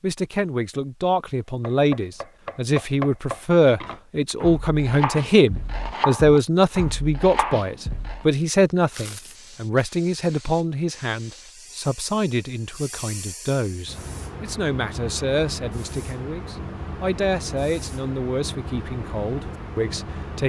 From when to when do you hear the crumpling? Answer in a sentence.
The crumpling can be heard from 8.9 to 9.6 s.